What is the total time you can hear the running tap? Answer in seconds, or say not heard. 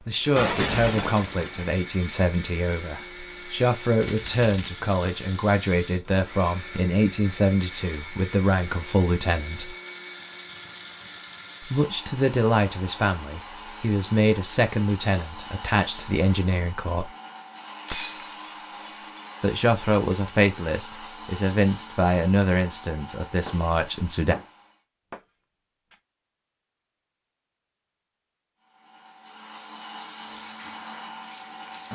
2 s.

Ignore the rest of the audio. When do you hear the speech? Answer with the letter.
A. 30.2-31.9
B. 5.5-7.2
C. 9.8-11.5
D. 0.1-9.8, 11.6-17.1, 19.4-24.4
D.